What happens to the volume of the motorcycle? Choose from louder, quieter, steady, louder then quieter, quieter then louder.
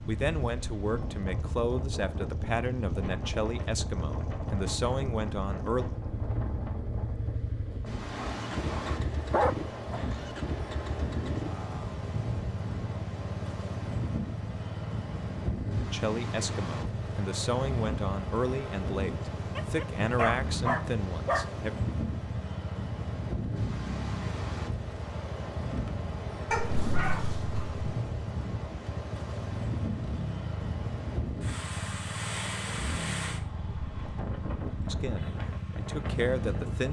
steady.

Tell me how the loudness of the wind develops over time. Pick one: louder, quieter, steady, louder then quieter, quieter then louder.
steady.